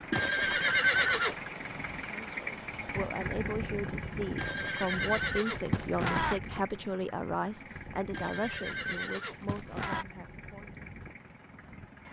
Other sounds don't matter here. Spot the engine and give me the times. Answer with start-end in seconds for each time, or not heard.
0.0-12.0.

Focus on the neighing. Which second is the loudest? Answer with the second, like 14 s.
1 s.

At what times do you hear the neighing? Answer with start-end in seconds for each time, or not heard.
0.1-1.4, 4.3-6.4, 8.1-10.1.